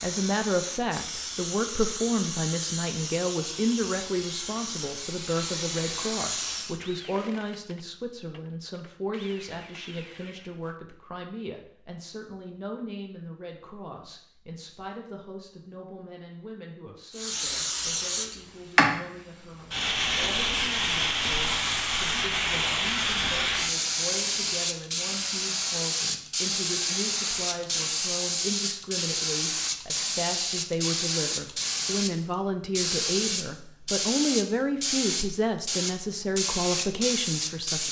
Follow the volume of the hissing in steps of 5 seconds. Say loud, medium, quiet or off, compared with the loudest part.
medium, medium, off, loud, loud, loud, loud, loud.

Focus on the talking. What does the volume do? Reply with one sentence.
The volume of the talking goes down, then up.